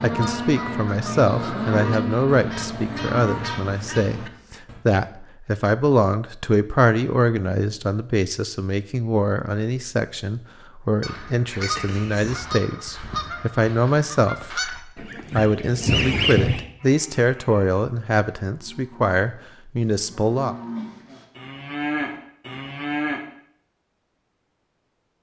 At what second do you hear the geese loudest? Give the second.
16 s.